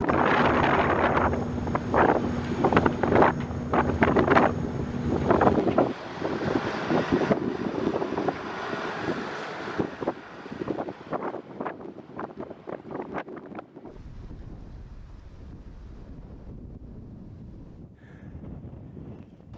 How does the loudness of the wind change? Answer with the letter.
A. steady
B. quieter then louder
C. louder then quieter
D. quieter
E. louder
D.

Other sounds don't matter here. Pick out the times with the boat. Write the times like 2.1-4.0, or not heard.
0.0-5.7.